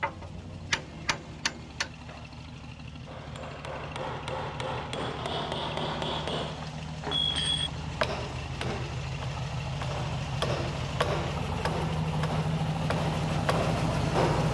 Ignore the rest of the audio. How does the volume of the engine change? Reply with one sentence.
The volume of the engine goes up.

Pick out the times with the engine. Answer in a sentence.
You can hear the engine from 0.0 to 14.4 s.